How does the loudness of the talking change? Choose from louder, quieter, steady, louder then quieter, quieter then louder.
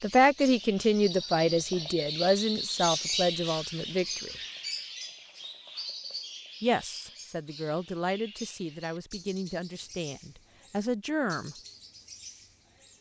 quieter.